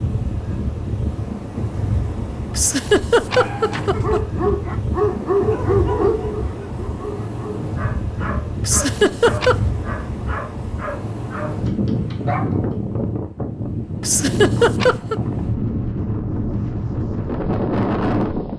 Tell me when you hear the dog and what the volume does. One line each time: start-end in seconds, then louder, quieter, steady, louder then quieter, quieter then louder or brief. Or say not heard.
3.3-12.6 quieter.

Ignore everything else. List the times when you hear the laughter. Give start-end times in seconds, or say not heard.
2.5-4.2, 8.7-9.6, 14.0-15.2.